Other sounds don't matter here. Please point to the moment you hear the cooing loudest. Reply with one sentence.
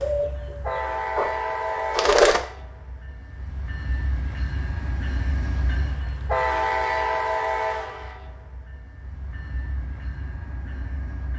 The volume of the cooing peaks at 2 seconds.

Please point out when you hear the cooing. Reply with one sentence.
You can hear the cooing from 0.0 to 1.3 s and from 1.9 to 2.4 s.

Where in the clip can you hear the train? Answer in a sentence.
You can hear the train from 0.0 to 11.3 s.